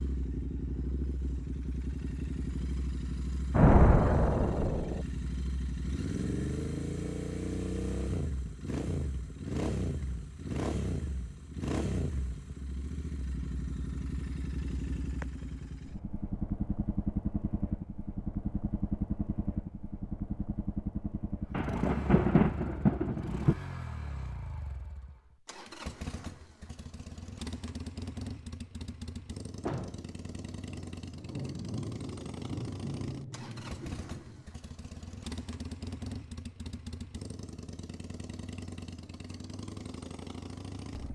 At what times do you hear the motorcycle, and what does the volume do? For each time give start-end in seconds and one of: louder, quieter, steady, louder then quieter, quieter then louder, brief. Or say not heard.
0.0-41.1 quieter.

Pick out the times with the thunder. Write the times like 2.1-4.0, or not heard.
3.5-5.0, 21.5-23.6, 29.6-34.5.